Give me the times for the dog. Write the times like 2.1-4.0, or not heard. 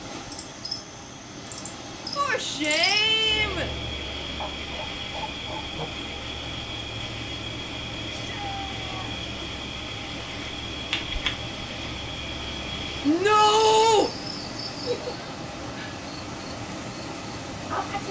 4.4-5.8.